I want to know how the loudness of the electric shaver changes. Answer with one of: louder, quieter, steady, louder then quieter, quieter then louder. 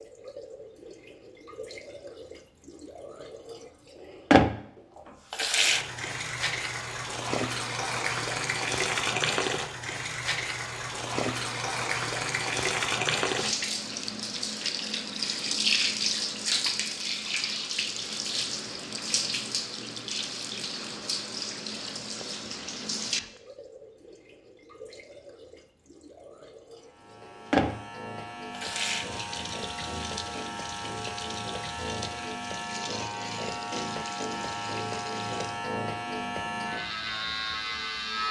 louder.